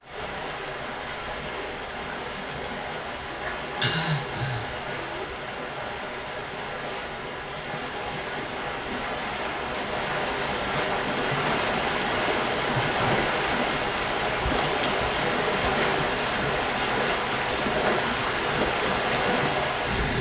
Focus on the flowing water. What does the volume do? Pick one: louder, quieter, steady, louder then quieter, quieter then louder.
louder.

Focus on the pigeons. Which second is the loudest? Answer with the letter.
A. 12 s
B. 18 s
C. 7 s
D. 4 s
D.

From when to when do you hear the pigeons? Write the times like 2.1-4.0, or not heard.
3.4-5.3.